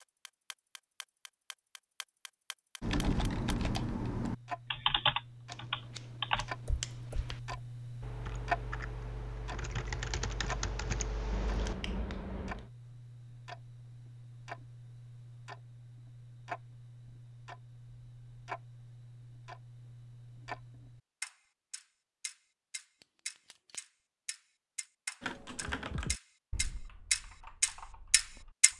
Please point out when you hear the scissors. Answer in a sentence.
You can hear the scissors from 5.5 to 7.4 s, from 11.3 to 12.7 s and from 23.0 to 23.9 s.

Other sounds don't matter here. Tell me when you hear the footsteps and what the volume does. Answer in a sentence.
You can't hear the footsteps here.